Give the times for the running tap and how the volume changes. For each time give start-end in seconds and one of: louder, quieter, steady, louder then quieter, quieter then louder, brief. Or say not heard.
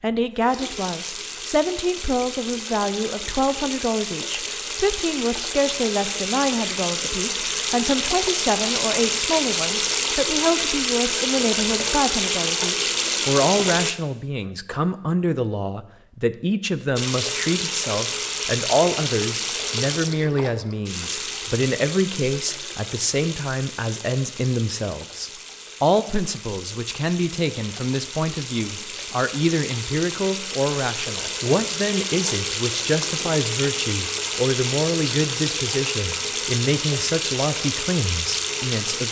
0.2-13.9 louder
16.9-39.0 quieter then louder.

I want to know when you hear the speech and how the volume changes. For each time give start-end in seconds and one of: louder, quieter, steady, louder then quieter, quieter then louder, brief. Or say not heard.
0.0-39.0 steady.